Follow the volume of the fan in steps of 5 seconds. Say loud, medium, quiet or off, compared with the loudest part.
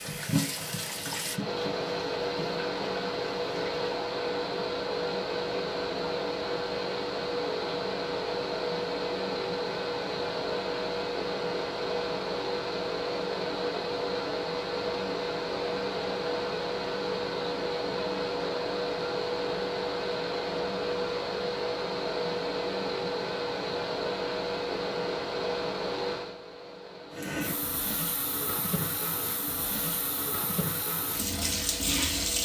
loud, loud, loud, loud, loud, medium, quiet.